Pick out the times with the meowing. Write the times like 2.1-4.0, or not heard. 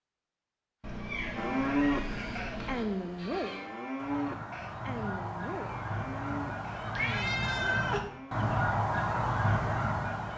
0.8-2.9, 7.0-8.1.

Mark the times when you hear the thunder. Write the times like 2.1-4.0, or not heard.
not heard.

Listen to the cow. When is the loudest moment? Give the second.
2 s.